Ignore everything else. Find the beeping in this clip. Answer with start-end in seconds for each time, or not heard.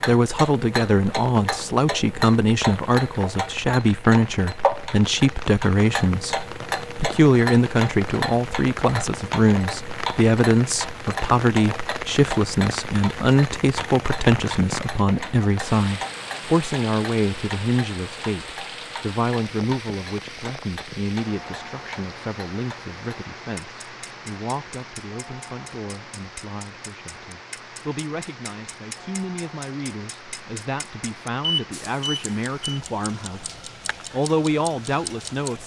31.4-32.8.